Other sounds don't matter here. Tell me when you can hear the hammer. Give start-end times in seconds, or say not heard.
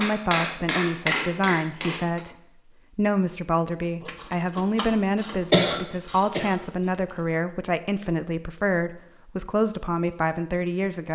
0.0-2.2.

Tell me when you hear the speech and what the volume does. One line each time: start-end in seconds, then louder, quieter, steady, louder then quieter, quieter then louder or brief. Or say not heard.
0.0-2.4 brief
3.0-11.1 steady.